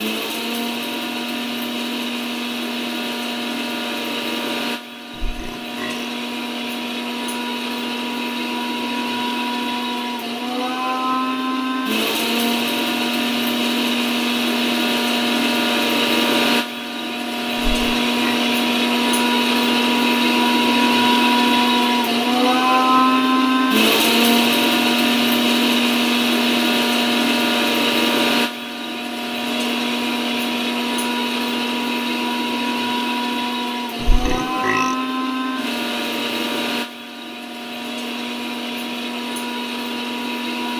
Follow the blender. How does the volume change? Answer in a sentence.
The volume of the blender goes up, then down.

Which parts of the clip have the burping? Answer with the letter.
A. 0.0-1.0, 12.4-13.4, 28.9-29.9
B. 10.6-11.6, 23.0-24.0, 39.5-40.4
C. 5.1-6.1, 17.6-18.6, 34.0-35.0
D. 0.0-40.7
C.